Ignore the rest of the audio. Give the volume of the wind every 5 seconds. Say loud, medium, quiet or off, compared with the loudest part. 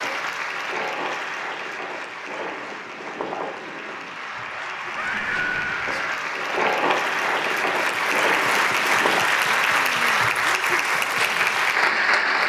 medium, loud, off.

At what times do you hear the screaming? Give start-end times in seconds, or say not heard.
5.0-6.3.